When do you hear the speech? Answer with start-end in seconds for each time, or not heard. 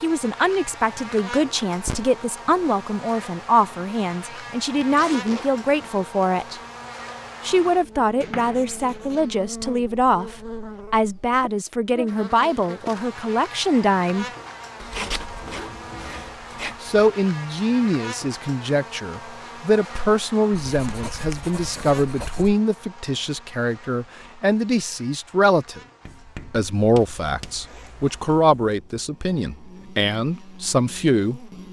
0.0-6.6, 7.5-14.2, 16.8-25.8, 26.5-31.5.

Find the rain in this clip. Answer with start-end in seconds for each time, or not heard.
not heard.